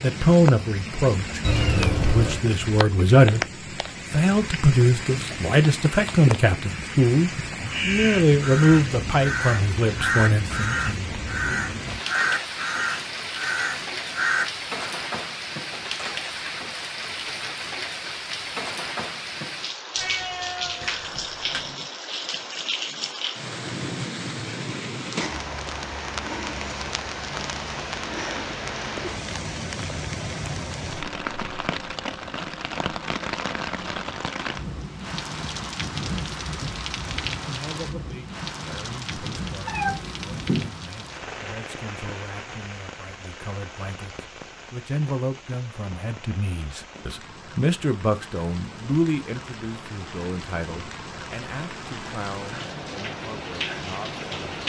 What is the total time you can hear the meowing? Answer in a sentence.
You can hear the meowing for 4 seconds altogether.